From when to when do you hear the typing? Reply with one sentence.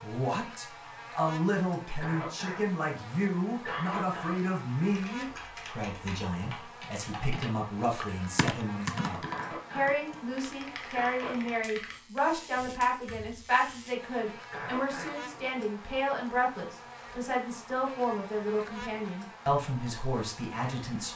You can hear the typing from 4.8 to 13.8 s.